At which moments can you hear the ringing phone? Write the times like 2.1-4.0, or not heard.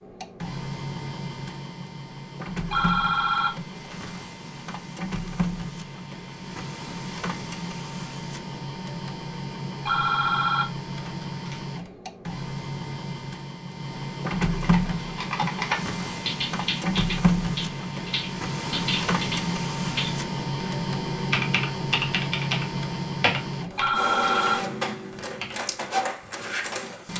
2.7-4.1, 9.8-11.6, 23.8-24.6.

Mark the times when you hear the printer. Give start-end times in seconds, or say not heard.
0.0-27.1.